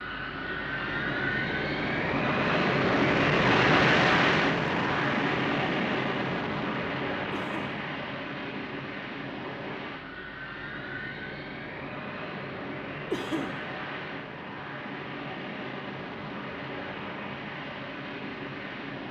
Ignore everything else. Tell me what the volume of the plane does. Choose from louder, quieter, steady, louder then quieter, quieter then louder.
quieter.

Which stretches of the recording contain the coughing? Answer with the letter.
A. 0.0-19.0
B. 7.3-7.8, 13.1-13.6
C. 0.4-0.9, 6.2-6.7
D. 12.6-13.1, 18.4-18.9
B.